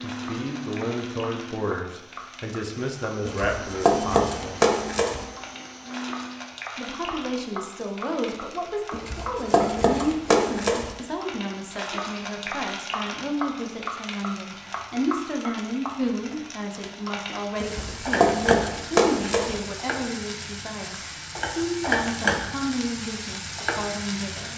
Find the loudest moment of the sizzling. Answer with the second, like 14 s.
22 s.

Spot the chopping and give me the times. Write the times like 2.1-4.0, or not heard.
3.2-5.2, 8.9-10.9, 17.6-19.6.